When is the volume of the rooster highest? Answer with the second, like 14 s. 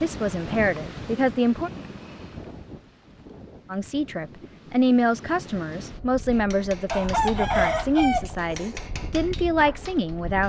8 s.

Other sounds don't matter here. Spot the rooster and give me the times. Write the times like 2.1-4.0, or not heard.
6.9-8.8.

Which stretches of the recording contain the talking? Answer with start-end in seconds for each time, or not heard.
0.0-1.7, 3.7-10.4.